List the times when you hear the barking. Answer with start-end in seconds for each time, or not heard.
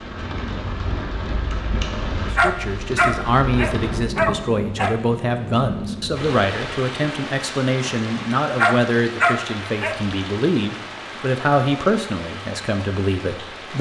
2.4-5.0, 8.6-10.0.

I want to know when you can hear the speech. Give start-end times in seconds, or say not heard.
2.3-13.7.